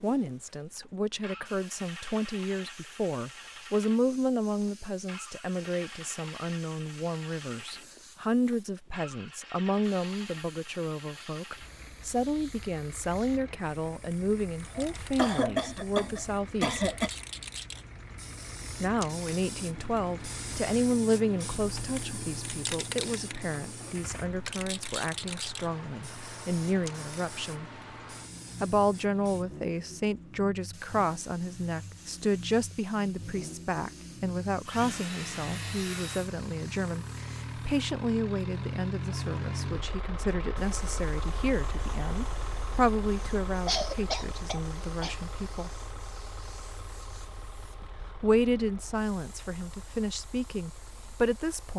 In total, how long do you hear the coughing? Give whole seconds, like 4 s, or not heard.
4 s.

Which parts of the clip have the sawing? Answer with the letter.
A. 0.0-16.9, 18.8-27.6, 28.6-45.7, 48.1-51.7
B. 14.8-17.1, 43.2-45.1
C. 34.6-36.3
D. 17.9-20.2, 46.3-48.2
C.